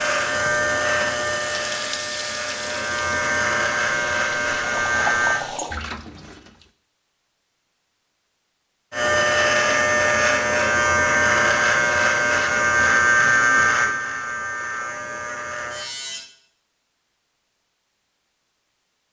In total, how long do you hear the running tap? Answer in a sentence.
You can hear the running tap for 7 seconds altogether.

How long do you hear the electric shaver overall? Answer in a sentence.
The electric shaver can be heard for 13 seconds in total.